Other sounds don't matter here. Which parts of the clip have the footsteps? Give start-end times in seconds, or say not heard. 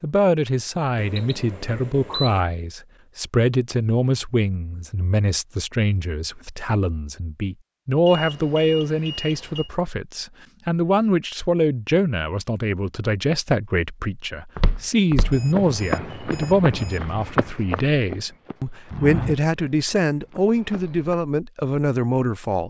14.6-21.1.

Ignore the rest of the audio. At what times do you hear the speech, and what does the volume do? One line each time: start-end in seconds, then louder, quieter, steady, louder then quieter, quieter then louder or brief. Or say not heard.
0.0-22.6 steady.